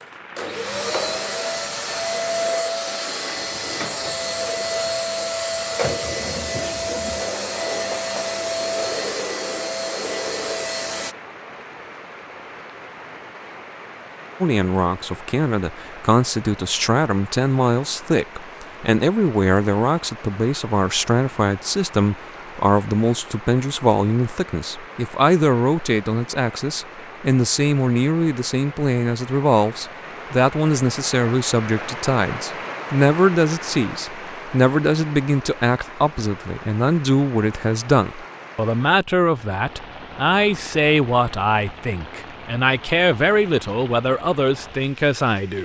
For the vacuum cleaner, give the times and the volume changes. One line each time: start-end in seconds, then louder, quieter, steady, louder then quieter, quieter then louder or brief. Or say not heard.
0.3-11.2 steady.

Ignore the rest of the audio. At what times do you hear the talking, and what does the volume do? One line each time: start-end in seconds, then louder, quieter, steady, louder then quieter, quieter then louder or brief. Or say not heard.
14.4-45.6 steady.